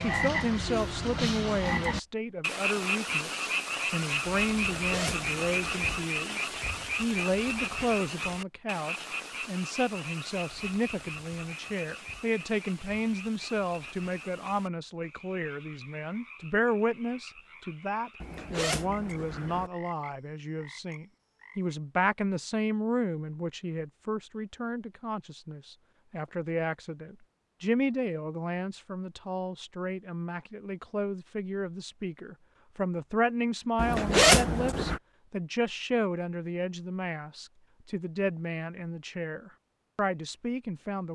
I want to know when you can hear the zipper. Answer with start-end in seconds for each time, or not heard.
4.5-6.0, 18.2-19.7, 33.8-35.0.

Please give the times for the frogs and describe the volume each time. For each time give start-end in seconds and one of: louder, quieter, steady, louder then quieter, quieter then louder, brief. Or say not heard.
0.0-21.8 quieter.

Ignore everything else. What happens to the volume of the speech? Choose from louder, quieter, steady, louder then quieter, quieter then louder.
steady.